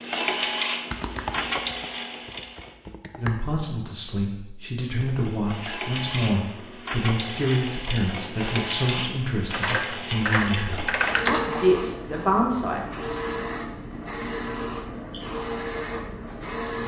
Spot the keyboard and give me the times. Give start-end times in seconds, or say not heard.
0.9-3.4, 9.6-11.8.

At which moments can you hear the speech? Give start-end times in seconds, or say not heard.
3.1-12.9.